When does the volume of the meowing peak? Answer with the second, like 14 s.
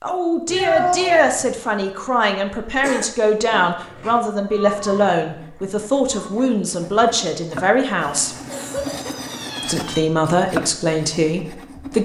1 s.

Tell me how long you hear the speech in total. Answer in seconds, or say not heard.
11 s.